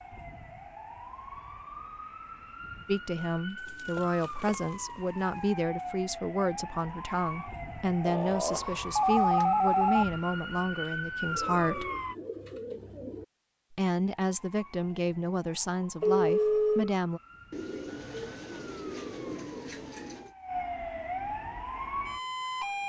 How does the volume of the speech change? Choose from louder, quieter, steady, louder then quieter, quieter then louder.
steady.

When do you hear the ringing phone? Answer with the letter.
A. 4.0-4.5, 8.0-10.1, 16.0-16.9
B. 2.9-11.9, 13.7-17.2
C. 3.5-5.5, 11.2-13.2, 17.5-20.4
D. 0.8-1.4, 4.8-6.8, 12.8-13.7
A.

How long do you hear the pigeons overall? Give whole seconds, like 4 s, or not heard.
7 s.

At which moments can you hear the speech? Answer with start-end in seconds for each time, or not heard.
2.9-11.9, 13.7-17.2.